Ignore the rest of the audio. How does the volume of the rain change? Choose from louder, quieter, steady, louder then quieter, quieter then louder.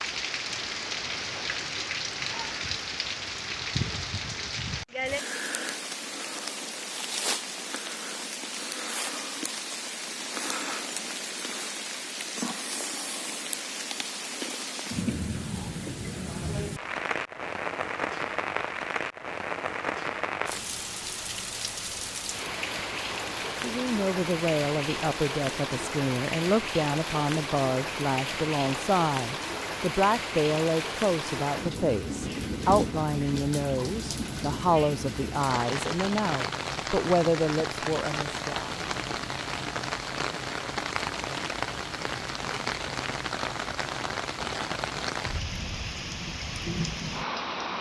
steady.